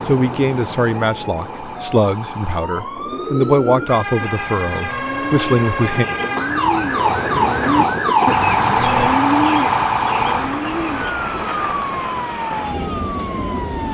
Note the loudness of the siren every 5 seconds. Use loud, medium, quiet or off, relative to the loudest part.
medium, loud, medium.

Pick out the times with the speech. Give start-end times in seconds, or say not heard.
0.0-6.0.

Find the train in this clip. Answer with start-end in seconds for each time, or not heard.
0.0-13.8.